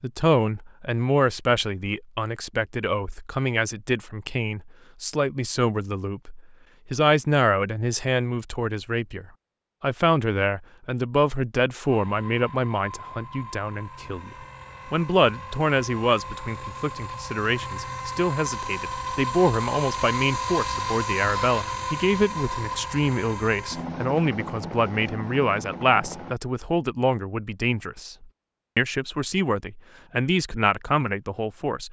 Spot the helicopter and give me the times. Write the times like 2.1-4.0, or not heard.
11.8-26.4.